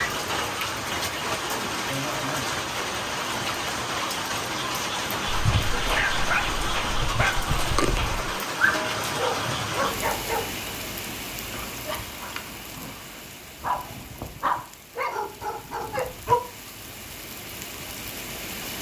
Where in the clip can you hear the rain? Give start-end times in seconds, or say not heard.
0.0-18.7.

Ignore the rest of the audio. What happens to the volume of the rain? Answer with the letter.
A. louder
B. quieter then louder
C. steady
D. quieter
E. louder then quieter
D.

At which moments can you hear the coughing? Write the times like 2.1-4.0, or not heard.
not heard.